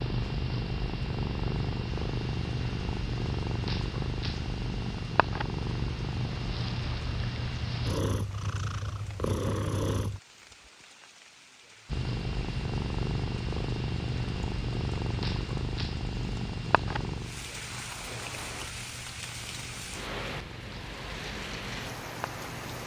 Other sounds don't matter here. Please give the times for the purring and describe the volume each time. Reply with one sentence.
The purring can be heard from 0.0 to 10.2 s, at a steady volume; and from 11.8 to 22.8 s, getting quieter.